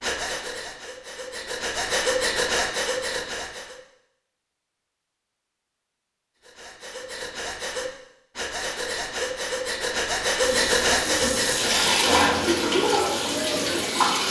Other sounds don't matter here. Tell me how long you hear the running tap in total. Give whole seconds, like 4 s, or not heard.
4 s.